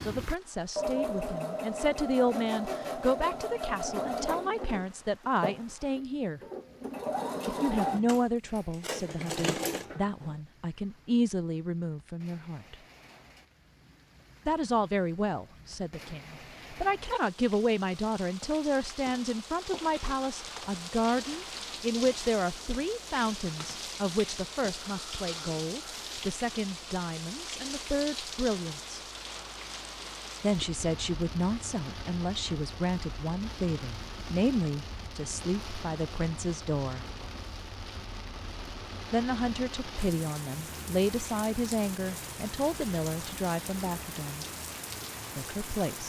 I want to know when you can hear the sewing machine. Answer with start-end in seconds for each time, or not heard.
0.0-10.3.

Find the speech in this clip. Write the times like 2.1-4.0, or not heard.
0.0-6.4, 7.5-12.8, 14.4-29.0, 30.4-37.0, 39.1-44.5, 45.4-46.0.